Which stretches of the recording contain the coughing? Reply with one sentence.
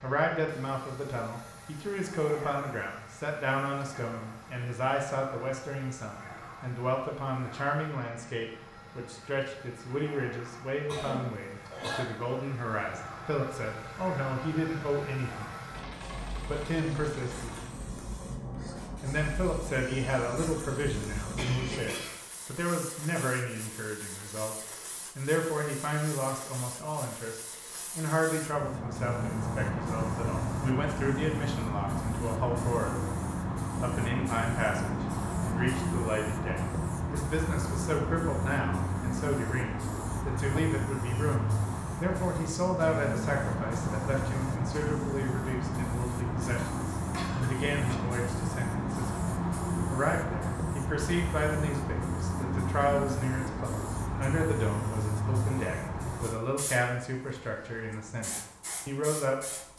The coughing can be heard from 10.8 to 12.1 s, from 21.4 to 22.2 s and from 47.1 to 48.0 s.